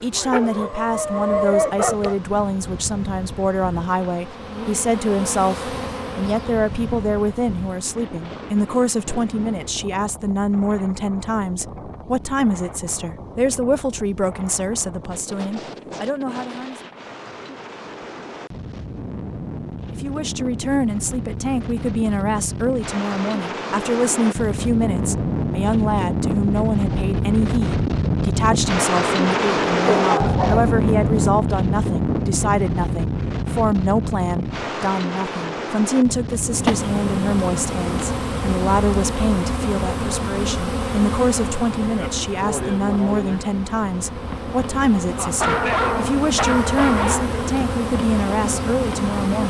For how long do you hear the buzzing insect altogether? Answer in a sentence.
The buzzing insect can be heard for 23 seconds in total.